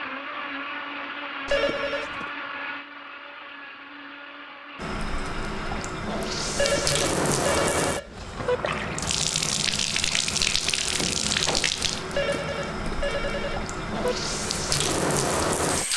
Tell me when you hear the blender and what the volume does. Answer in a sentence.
The blender can be heard from 0.0 to 5.9 s, getting quieter.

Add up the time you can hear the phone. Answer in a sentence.
The phone can be heard for 5 seconds in total.